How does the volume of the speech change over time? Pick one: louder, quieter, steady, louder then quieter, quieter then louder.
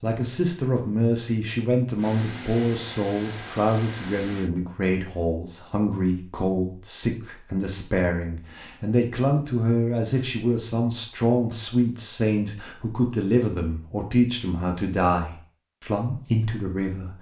steady.